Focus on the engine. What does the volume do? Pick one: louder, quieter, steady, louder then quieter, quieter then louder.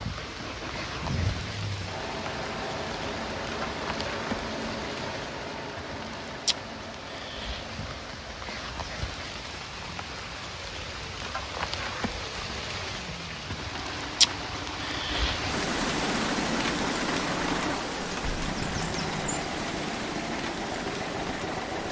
quieter then louder.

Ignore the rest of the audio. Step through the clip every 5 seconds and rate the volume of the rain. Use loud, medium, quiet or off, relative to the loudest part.
medium, medium, loud, loud, medium.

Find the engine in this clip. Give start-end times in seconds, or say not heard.
0.0-21.8.